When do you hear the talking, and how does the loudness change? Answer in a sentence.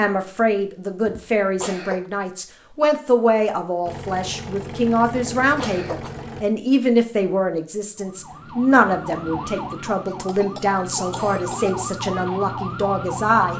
You can hear the talking from 0.0 to 13.5 s, at a steady volume.